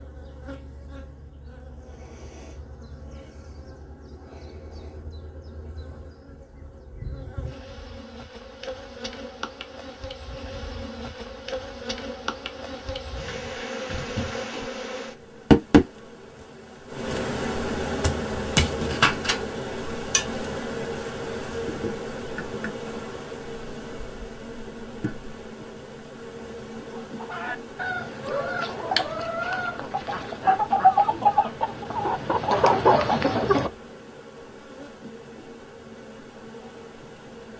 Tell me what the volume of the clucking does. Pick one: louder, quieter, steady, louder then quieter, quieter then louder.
louder.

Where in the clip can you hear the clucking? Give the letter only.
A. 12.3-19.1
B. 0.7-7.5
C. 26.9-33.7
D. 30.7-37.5
C.